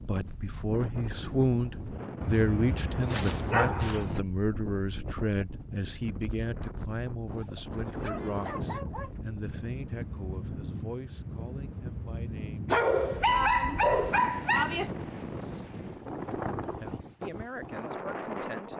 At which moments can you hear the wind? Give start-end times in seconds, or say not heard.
0.0-18.7.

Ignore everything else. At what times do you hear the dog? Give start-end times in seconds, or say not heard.
2.2-4.2, 7.2-9.2, 12.7-14.9.